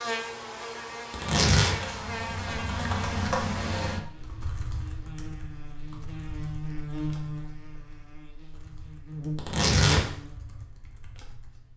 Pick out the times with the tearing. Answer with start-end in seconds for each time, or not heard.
1.1-1.8, 9.3-10.0.